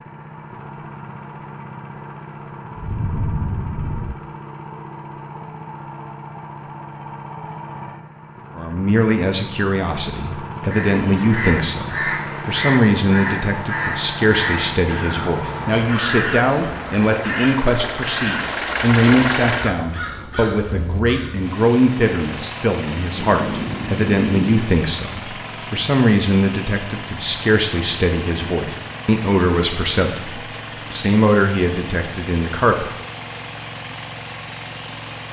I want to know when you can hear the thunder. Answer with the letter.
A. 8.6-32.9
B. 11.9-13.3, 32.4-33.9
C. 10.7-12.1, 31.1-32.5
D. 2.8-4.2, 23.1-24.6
D.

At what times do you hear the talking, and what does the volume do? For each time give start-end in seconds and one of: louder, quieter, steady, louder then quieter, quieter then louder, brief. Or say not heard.
8.6-32.9 steady.